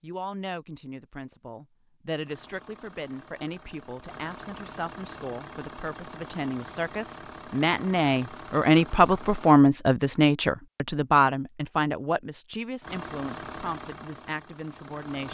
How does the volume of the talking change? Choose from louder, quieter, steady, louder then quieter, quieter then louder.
louder then quieter.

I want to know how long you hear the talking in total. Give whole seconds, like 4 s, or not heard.
15 s.